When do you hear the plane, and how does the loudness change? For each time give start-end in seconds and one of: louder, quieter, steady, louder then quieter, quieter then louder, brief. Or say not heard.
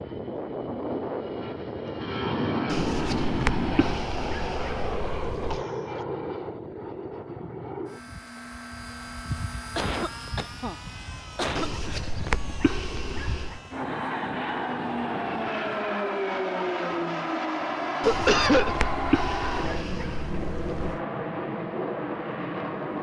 0.0-22.9 quieter then louder.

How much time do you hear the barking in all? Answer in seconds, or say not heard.
8 s.